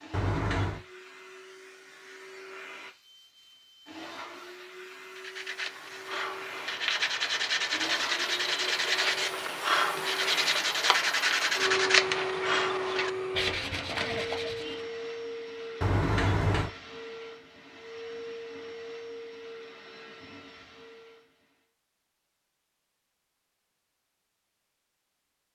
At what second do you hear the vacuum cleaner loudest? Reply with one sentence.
The loudest moment of the vacuum cleaner is at 12 seconds.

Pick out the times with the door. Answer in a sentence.
The door can be heard from 0.1 to 0.8 s and from 15.8 to 16.7 s.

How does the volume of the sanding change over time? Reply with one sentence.
The volume of the sanding goes up, then down.